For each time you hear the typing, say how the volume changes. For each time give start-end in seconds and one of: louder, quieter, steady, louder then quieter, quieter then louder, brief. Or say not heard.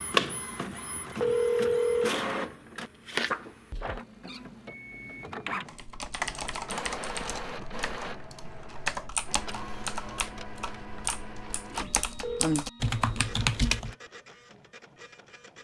5.7-13.9 louder.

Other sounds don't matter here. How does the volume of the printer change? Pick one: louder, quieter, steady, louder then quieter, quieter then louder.
quieter.